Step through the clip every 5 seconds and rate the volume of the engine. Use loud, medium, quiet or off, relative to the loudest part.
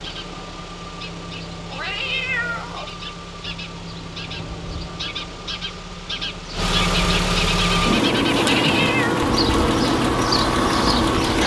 quiet, loud, loud.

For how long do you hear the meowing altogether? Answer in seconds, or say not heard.
2 s.